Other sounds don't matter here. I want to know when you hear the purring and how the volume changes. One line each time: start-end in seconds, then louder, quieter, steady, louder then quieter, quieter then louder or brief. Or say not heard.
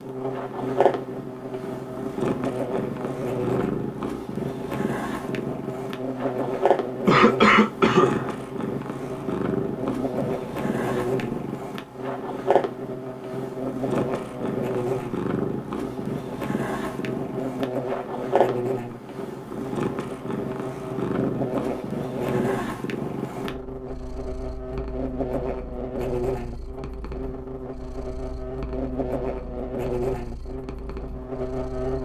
0.0-32.0 quieter.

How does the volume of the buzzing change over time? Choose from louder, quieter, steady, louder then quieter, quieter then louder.
steady.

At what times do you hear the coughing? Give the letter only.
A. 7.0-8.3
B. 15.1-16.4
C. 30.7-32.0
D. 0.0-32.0
A.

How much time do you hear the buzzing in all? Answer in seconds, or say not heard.
32 s.